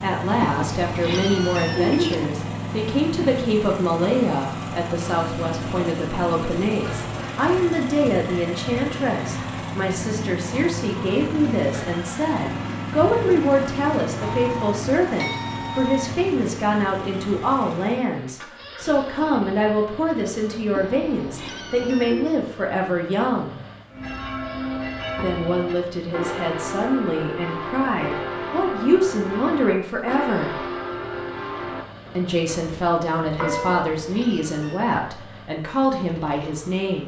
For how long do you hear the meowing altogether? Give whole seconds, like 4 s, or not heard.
5 s.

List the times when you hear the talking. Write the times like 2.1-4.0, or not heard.
0.0-23.6, 25.2-30.6, 32.1-37.0.